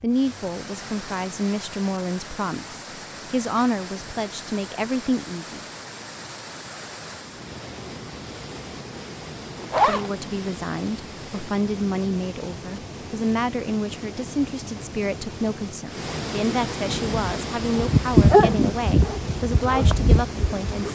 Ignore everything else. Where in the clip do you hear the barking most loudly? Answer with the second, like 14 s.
18 s.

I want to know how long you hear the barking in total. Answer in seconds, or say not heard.
4 s.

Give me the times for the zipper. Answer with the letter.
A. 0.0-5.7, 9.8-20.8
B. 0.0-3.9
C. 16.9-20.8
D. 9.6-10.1
D.